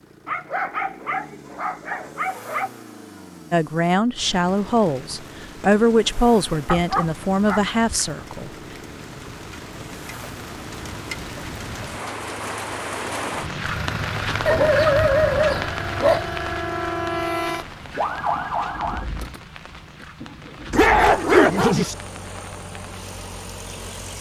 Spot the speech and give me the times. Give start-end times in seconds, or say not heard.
3.5-8.5.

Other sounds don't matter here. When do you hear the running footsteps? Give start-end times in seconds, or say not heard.
not heard.